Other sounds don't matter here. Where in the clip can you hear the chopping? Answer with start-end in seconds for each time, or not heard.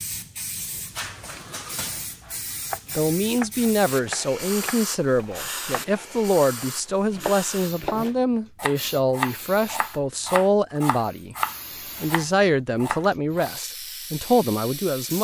2.2-13.5.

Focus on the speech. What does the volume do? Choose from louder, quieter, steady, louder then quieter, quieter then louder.
steady.